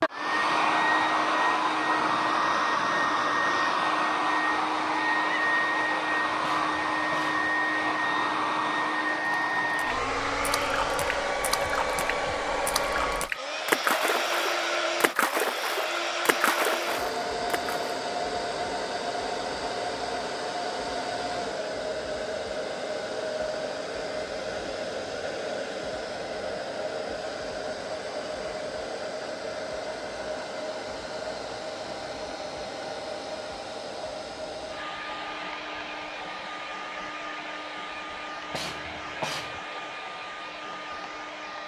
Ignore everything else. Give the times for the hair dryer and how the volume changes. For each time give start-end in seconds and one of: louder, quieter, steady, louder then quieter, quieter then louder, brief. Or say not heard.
0.0-41.6 quieter.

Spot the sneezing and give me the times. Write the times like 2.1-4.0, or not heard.
6.4-7.5, 38.5-39.6.